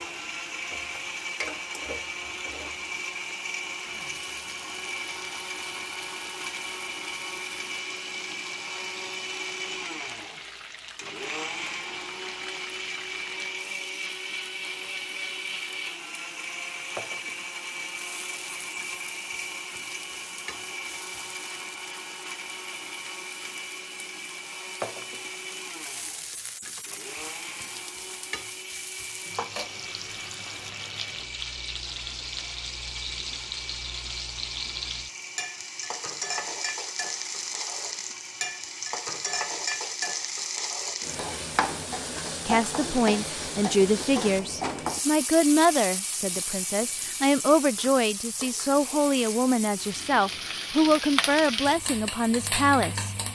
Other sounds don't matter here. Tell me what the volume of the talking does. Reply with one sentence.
The volume of the talking stays about the same.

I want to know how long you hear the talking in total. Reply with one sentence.
The talking can be heard for 11 seconds in total.